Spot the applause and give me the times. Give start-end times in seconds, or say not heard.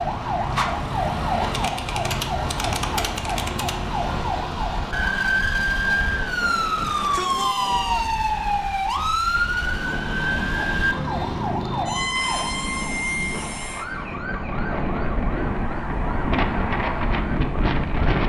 not heard.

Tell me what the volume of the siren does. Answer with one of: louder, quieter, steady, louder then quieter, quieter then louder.
quieter.